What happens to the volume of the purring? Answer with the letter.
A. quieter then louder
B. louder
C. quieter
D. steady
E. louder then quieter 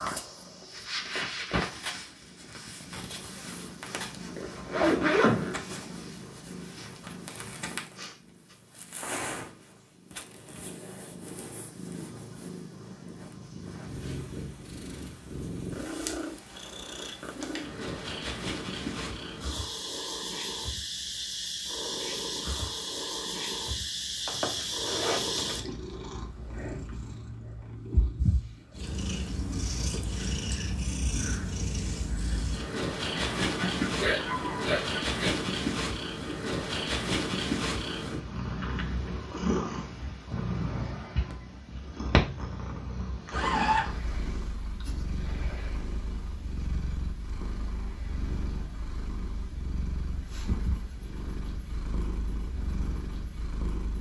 E.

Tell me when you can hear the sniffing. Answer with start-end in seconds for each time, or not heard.
8.0-8.6, 33.1-35.4.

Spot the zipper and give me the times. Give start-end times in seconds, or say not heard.
4.3-5.6, 24.2-25.6, 43.3-44.0.